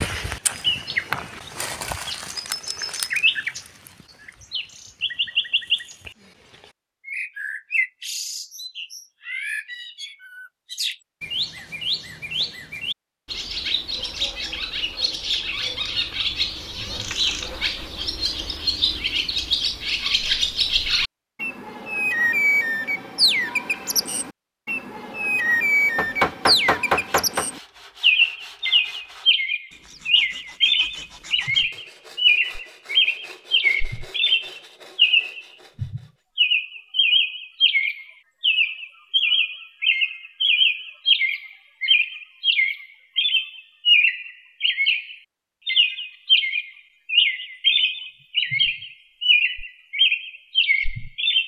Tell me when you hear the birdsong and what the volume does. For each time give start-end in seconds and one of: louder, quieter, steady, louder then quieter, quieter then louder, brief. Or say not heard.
0.0-51.4 louder.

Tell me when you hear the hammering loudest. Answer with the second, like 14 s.
26 s.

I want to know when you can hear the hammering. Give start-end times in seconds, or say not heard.
15.6-17.4, 25.9-27.4.